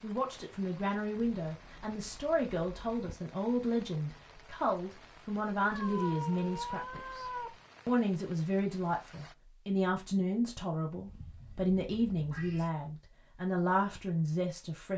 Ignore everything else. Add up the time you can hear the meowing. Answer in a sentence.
The meowing can be heard for 5 seconds in total.